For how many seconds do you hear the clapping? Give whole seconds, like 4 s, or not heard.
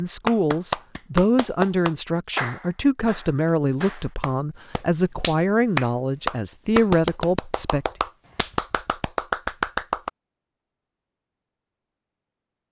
10 s.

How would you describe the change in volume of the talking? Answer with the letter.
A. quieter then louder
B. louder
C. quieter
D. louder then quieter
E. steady
E.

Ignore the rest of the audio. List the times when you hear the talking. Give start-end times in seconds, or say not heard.
0.0-7.8.